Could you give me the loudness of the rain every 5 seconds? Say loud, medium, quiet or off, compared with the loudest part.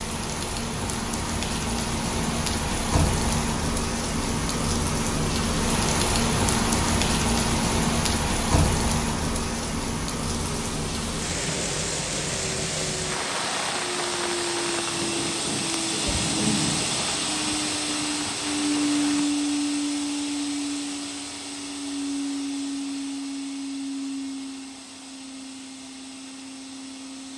loud, loud, medium, medium, off, off.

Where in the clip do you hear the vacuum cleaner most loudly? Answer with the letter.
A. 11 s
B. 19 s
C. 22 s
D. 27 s
B.